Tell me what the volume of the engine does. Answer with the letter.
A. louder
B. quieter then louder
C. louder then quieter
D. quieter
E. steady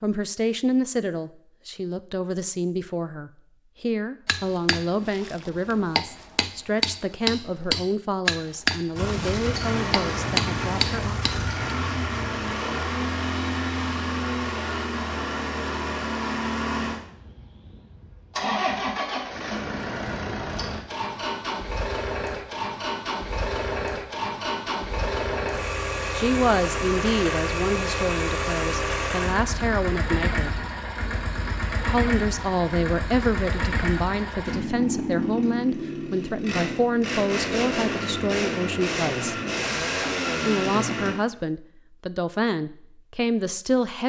E.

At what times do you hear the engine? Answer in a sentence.
You can hear the engine from 8.9 to 41.1 s.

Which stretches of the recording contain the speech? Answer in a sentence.
You can hear the speech from 0.0 to 11.2 s, from 26.1 to 30.6 s, from 31.9 to 39.4 s and from 40.5 to 44.0 s.